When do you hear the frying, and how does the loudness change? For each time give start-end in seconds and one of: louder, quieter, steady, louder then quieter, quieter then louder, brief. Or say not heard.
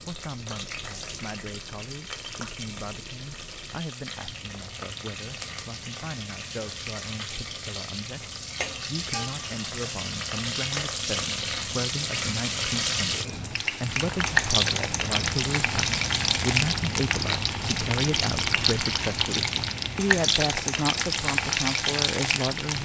0.0-22.8 louder.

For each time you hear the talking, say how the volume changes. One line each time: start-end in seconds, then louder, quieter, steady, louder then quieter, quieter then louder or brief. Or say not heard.
0.1-22.8 louder.